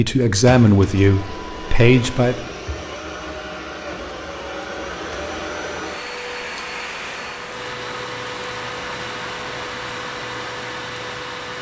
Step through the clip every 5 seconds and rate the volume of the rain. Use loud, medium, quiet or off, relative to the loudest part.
off, loud, loud.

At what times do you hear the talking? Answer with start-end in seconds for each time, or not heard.
0.0-2.5.